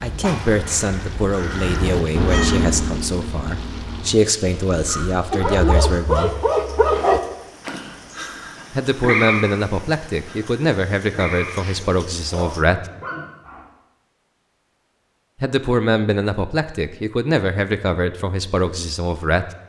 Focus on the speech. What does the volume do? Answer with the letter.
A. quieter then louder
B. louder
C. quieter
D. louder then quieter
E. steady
E.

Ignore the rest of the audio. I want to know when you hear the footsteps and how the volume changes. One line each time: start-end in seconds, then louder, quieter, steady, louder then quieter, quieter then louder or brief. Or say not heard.
not heard.